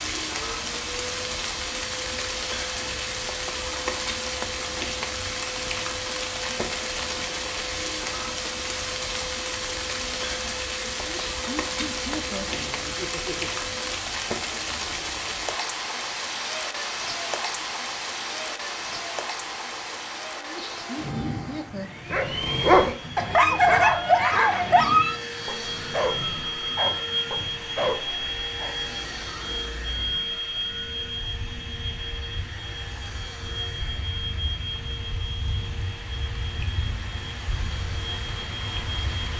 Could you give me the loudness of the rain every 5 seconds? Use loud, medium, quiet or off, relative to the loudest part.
loud, loud, loud, loud, medium, quiet, quiet, medium.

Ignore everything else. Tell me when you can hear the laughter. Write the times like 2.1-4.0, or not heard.
10.9-13.6, 20.4-22.1.